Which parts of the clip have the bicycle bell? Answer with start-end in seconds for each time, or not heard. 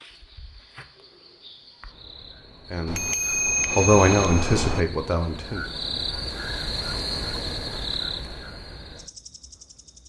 2.9-4.8.